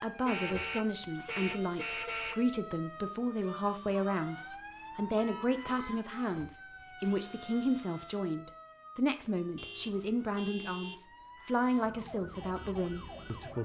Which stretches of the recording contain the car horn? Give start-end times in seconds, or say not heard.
0.2-2.4, 5.2-6.8, 9.6-11.0.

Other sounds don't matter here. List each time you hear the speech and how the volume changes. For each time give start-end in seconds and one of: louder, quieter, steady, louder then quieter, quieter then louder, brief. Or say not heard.
0.0-13.6 steady.